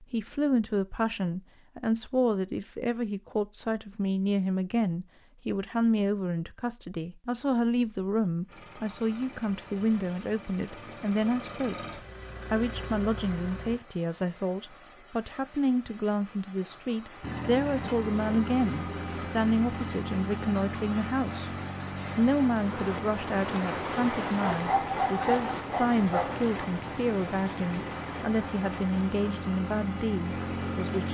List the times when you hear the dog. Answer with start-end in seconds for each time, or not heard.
24.4-26.4.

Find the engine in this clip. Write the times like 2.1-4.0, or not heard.
8.4-13.8, 17.2-31.0.